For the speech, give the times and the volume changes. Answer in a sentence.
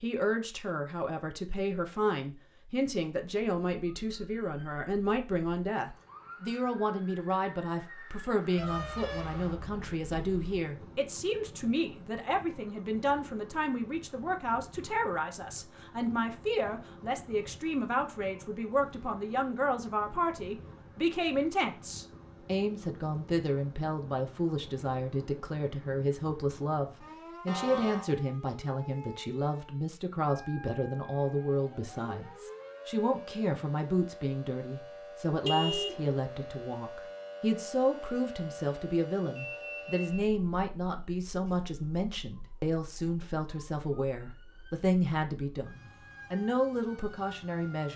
The speech can be heard from 0.0 to 47.9 s, at a steady volume.